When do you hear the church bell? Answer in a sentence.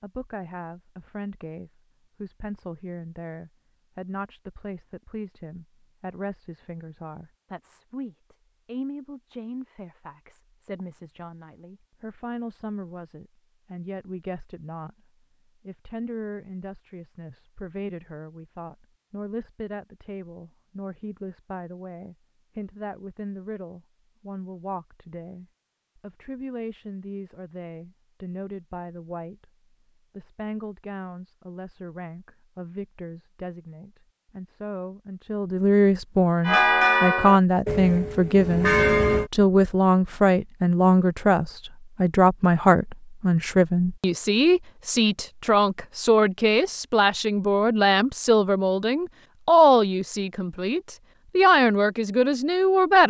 You can hear the church bell from 36.5 to 39.3 s.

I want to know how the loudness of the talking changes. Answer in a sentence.
The loudness of the talking goes up.